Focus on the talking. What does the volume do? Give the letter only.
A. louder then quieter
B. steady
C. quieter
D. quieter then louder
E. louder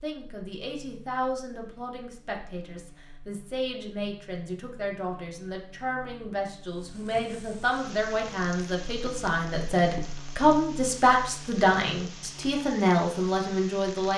E.